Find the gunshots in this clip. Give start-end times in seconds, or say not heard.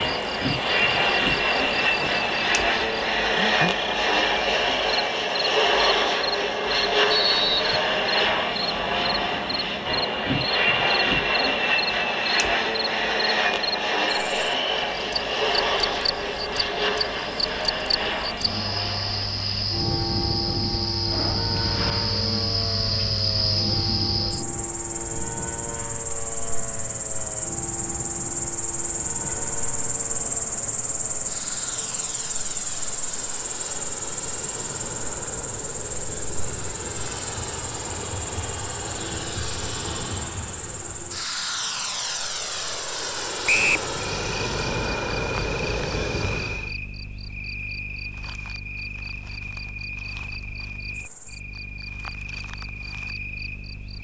not heard.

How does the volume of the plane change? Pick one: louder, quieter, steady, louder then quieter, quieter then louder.
quieter then louder.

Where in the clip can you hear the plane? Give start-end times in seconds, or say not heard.
0.0-46.7.